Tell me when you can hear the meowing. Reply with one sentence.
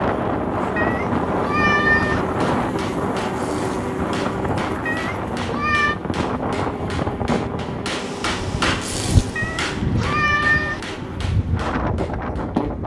You can hear the meowing from 0.8 to 2.2 s, from 4.8 to 6.0 s and from 9.3 to 10.8 s.